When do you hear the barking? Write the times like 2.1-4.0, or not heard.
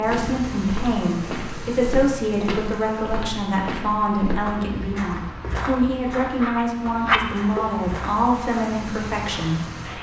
6.2-7.7.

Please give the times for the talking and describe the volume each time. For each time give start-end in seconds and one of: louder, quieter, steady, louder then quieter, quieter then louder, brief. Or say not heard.
0.0-9.9 steady.